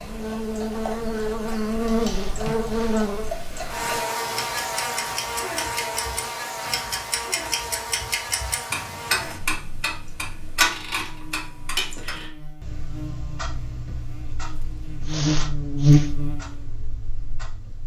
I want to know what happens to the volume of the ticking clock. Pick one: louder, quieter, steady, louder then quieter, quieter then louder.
louder then quieter.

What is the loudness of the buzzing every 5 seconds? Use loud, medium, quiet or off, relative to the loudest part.
medium, medium, quiet, loud.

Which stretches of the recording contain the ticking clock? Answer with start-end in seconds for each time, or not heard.
0.0-17.8.